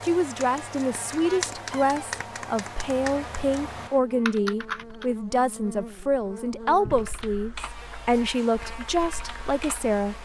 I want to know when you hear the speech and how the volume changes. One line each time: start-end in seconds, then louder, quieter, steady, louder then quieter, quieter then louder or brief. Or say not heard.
0.0-10.2 steady.